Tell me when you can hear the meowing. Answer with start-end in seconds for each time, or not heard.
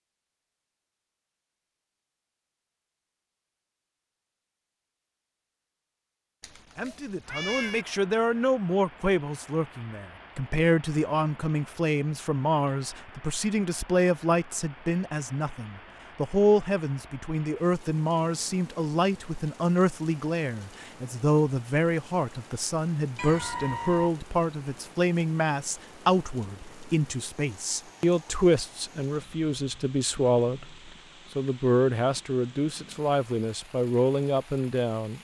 6.4-7.8, 23.1-24.1.